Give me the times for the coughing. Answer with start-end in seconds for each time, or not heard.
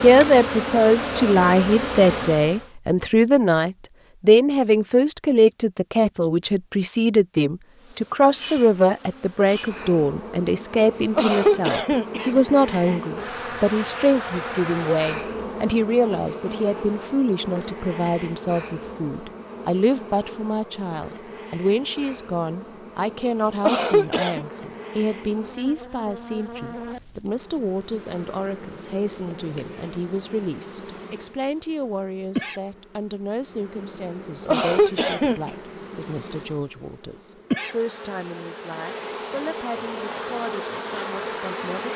11.2-12.3, 23.6-24.4, 34.5-35.5.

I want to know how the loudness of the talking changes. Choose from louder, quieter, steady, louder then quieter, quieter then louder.
quieter.